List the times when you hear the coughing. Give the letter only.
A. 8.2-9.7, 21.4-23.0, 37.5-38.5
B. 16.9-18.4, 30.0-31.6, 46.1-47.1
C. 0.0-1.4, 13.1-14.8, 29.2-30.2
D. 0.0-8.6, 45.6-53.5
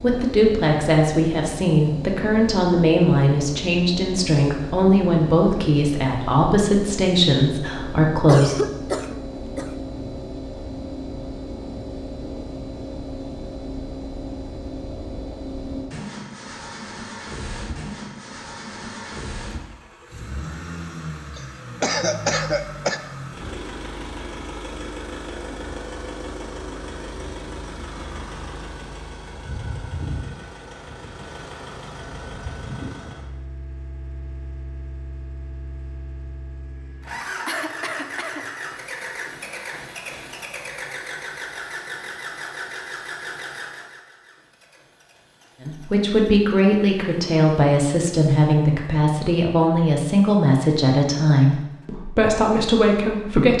A.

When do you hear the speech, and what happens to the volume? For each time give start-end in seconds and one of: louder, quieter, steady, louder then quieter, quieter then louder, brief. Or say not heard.
0.0-8.6 steady
45.6-53.5 steady.